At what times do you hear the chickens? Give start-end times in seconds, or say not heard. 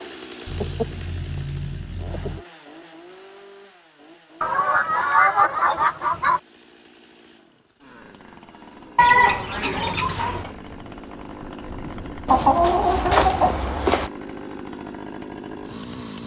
0.5-2.5, 4.4-6.4, 8.9-10.5, 12.2-14.1.